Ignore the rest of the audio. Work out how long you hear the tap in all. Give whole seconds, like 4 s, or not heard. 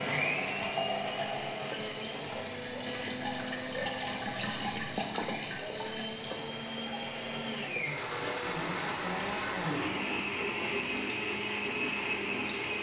13 s.